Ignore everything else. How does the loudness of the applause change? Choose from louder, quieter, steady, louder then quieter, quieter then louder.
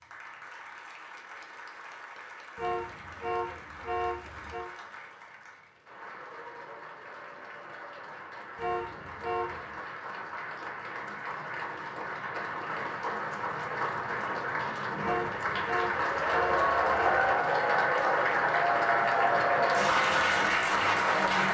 louder.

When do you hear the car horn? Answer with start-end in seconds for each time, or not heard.
2.5-4.7, 8.6-9.8, 15.0-17.4.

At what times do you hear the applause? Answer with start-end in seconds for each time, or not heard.
0.0-21.5.